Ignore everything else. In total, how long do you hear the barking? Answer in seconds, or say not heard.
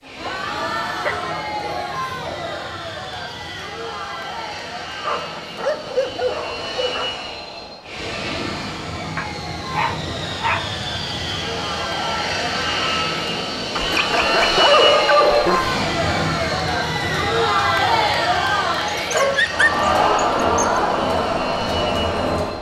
10 s.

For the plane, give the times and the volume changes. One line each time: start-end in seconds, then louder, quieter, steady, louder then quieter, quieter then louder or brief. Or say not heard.
0.0-22.5 louder then quieter.